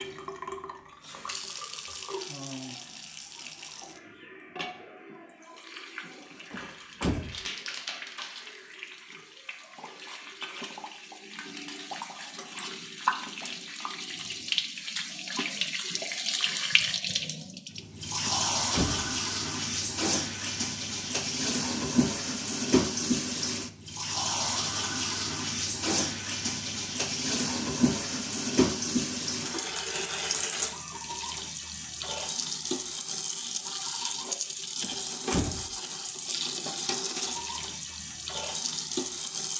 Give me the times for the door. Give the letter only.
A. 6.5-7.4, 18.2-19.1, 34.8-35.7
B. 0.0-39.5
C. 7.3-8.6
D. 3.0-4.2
A.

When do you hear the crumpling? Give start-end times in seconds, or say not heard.
7.3-8.6.